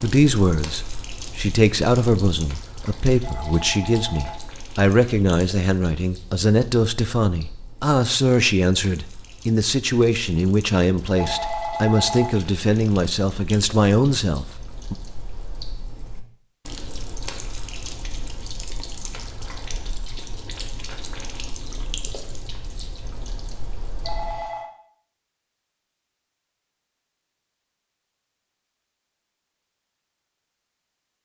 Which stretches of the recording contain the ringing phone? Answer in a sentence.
You can hear the ringing phone from 3.2 to 4.5 s, from 11.2 to 12.3 s and from 24.0 to 24.7 s.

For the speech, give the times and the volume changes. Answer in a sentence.
You can hear the speech from 0.0 to 14.9 s, at a steady volume.